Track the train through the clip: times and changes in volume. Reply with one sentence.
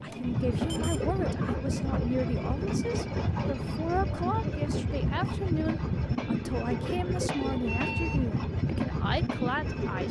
You can hear the train from 0.0 to 10.0 s, at a steady volume.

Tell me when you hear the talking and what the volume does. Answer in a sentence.
The talking can be heard from 0.0 to 10.0 s, at a steady volume.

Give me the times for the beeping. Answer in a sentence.
The beeping can be heard from 0.1 to 1.1 s and from 7.7 to 8.2 s.